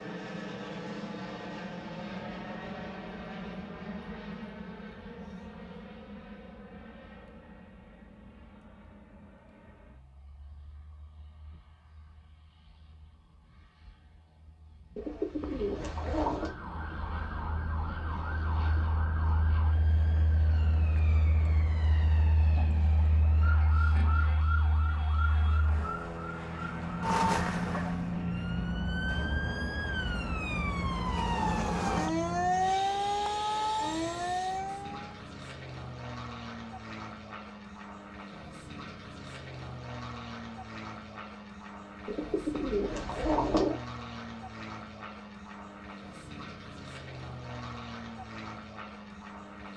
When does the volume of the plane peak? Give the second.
28 s.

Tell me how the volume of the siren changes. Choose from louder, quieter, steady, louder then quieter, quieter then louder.
louder.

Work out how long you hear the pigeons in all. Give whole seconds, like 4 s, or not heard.
3 s.